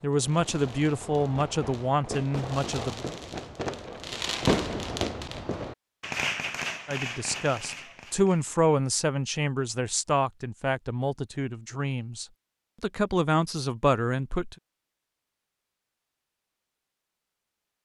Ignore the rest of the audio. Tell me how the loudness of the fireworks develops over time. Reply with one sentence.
The loudness of the fireworks goes up, then down.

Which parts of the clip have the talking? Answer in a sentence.
The talking can be heard from 0.0 to 3.0 s and from 6.8 to 14.6 s.